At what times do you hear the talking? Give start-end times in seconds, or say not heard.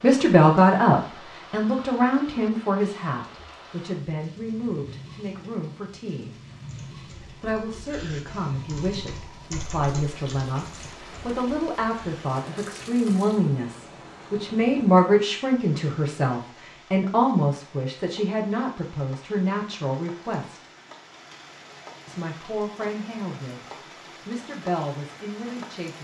0.0-6.3, 7.4-20.6, 22.1-25.9.